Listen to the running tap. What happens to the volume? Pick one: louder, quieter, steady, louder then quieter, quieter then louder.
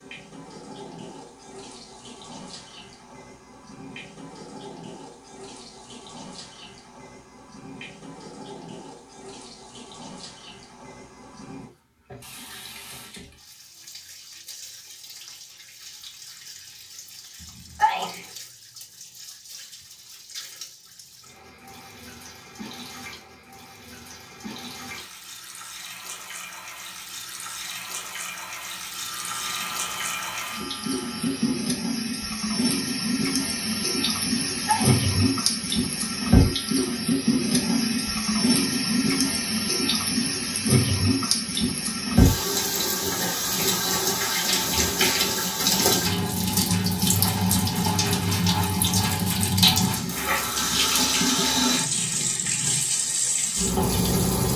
louder.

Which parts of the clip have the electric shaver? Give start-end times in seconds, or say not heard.
28.9-31.6.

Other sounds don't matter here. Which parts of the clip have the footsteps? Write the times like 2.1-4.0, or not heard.
not heard.